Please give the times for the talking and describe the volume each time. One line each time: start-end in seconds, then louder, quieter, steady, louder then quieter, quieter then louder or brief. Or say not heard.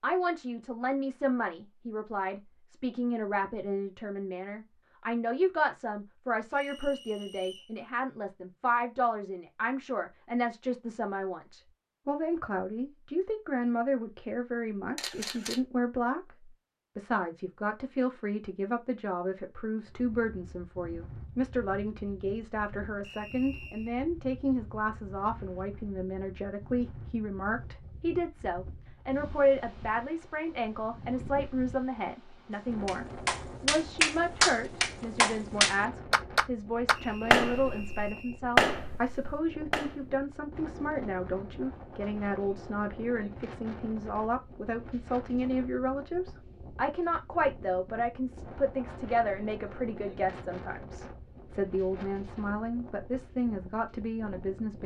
0.0-54.8 steady.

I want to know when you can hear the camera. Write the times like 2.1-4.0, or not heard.
14.9-15.6.